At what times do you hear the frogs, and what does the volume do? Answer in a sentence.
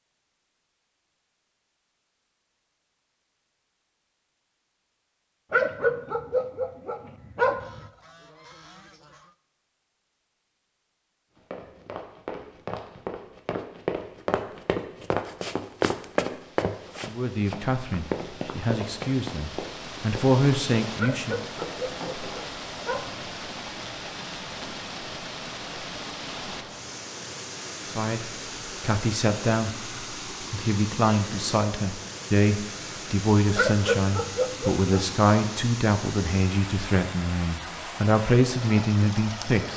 The frogs can't be heard in this clip.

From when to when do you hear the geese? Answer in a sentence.
The geese can be heard from 7.6 to 9.3 s.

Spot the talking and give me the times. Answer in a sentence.
The talking can be heard from 17.1 to 21.4 s and from 27.9 to 39.7 s.